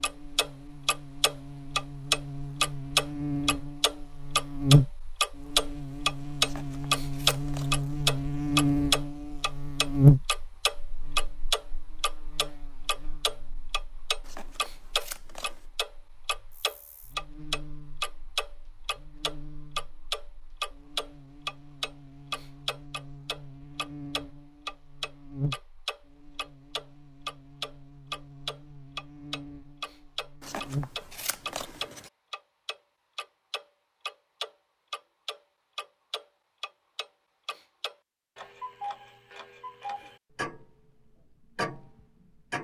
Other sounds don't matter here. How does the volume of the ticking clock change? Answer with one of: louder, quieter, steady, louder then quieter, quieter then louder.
quieter.